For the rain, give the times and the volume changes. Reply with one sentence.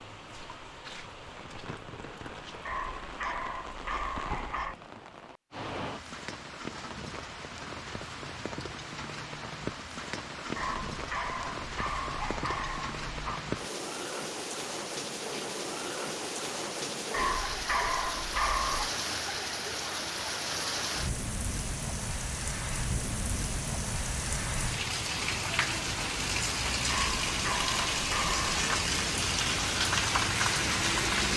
You can hear the rain from 0.0 to 31.3 s, getting louder.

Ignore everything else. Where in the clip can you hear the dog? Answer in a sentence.
The dog can be heard from 2.6 to 4.8 s, from 10.6 to 13.4 s, from 17.1 to 18.9 s and from 26.9 to 28.6 s.